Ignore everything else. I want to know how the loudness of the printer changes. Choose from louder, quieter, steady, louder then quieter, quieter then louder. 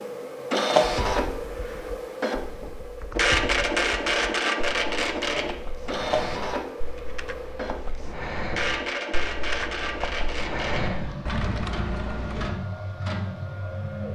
quieter.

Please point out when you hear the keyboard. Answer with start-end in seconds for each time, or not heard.
0.9-12.5.